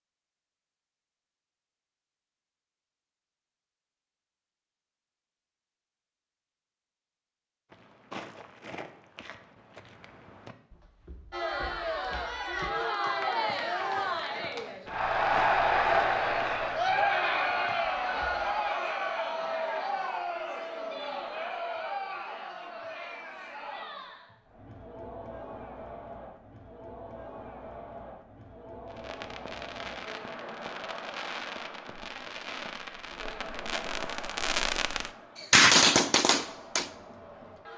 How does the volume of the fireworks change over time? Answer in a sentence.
The volume of the fireworks goes up.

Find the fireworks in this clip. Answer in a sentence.
The fireworks can be heard from 28.9 to 36.9 s.